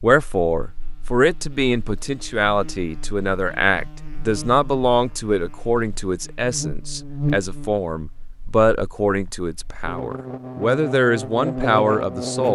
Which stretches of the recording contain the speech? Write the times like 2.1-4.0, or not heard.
0.0-12.5.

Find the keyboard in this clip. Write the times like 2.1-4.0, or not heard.
not heard.